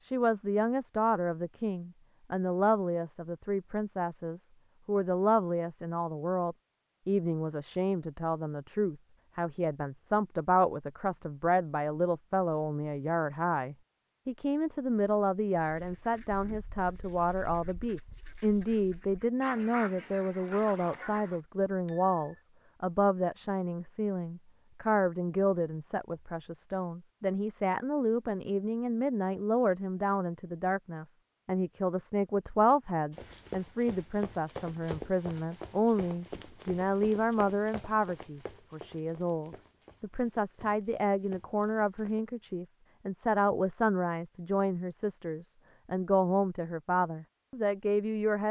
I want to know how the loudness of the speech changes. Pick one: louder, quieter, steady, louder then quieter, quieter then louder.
steady.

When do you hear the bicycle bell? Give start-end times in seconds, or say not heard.
21.9-22.4.